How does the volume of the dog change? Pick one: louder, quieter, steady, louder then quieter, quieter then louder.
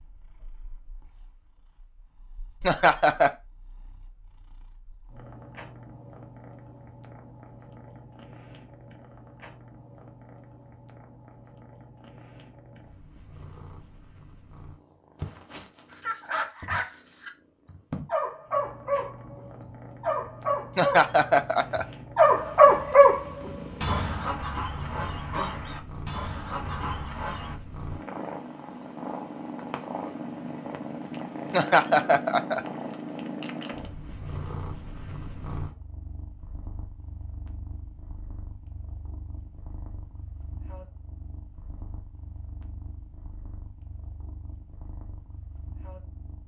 louder then quieter.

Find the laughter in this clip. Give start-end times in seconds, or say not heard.
2.6-3.3, 20.8-21.9, 31.5-32.6.